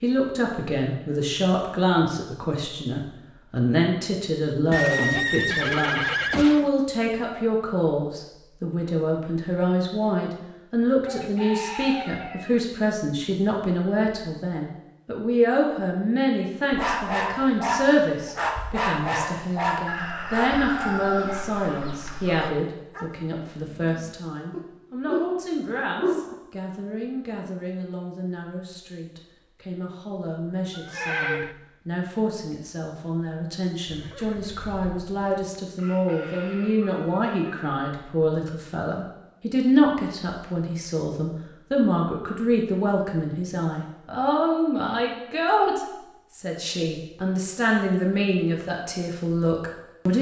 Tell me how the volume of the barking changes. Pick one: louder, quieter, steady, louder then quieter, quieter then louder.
quieter then louder.